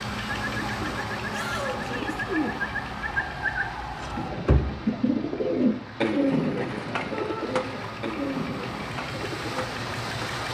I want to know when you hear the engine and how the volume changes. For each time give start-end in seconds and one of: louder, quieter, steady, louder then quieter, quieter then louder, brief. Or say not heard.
0.0-10.4 quieter then louder.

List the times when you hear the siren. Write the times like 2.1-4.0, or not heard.
0.2-4.3.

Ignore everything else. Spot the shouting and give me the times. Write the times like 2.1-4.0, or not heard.
1.3-2.2, 7.1-7.5.